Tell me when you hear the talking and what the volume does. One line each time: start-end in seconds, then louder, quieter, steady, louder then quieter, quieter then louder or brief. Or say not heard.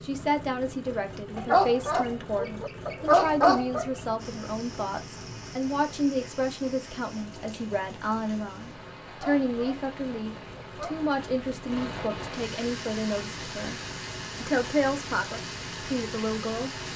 0.0-13.8 steady
14.4-16.9 brief.